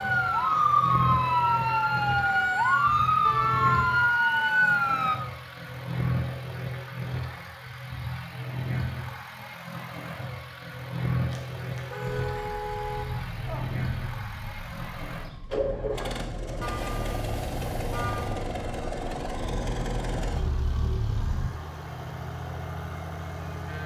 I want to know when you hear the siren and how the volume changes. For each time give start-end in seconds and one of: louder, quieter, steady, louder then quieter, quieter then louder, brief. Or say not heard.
0.0-5.2 steady
12.2-21.6 louder.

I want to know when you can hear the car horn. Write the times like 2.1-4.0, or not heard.
3.2-3.9, 11.3-13.7, 16.6-18.4.